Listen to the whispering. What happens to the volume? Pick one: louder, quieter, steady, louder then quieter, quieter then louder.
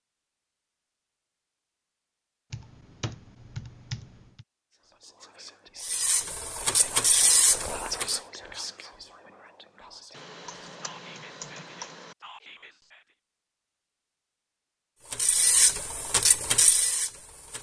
louder then quieter.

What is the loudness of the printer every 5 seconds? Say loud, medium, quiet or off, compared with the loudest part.
off, loud, off, loud.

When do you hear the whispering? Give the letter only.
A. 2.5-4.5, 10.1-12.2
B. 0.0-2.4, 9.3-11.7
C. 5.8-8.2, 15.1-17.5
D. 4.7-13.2
D.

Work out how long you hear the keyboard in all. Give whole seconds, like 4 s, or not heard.
4 s.